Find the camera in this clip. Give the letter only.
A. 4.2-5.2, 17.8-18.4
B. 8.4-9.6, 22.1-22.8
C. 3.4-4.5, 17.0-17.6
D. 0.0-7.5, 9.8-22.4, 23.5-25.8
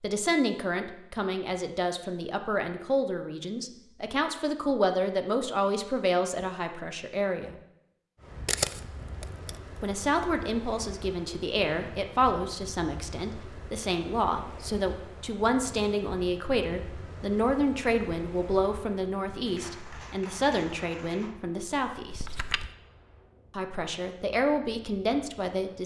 B.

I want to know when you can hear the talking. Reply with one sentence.
The talking can be heard from 0.0 to 7.5 s, from 9.8 to 22.4 s and from 23.5 to 25.8 s.